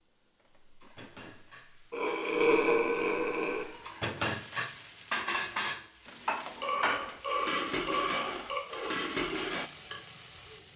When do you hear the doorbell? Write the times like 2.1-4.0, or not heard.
not heard.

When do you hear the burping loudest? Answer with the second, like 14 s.
3 s.